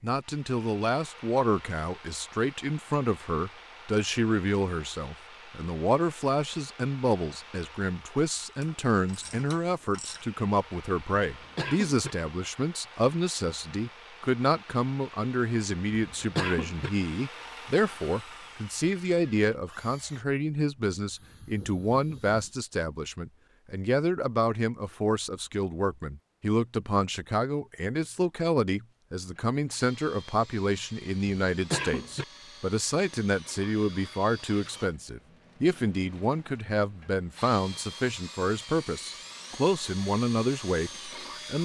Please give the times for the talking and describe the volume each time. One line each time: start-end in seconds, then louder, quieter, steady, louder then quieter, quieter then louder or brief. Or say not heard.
0.0-41.5 steady.